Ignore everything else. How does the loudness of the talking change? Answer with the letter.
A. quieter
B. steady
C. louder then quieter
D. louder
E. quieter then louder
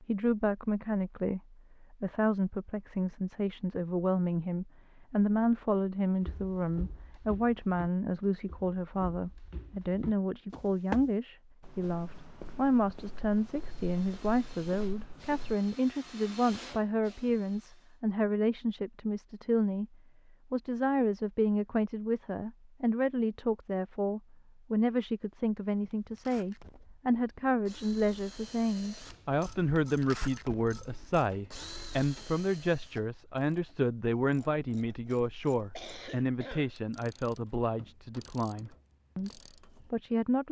B.